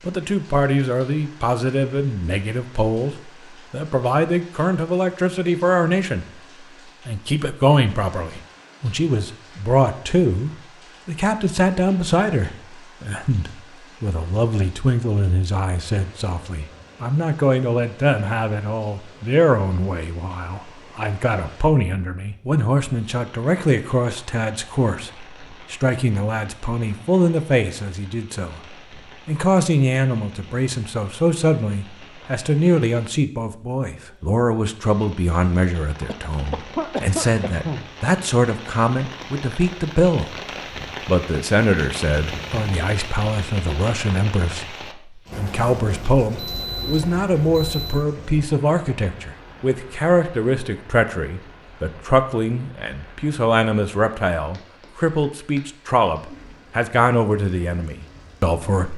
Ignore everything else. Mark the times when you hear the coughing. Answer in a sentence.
The coughing can be heard from 36.0 to 37.9 s.